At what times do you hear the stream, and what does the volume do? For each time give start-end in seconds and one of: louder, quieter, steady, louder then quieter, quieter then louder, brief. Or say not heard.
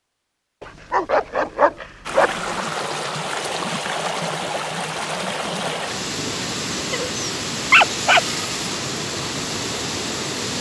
2.0-10.5 steady.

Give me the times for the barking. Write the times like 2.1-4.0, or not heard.
0.6-2.6, 6.2-8.2.